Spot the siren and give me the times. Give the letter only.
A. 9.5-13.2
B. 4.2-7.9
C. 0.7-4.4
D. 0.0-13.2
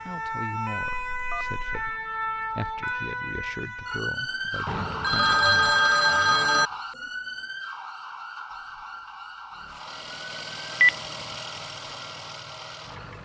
D.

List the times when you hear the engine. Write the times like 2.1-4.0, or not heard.
9.5-13.2.